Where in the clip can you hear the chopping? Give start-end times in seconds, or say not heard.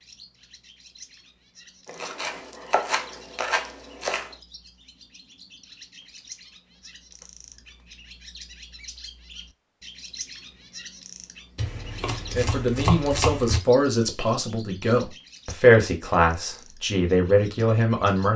1.9-4.3, 11.6-13.6.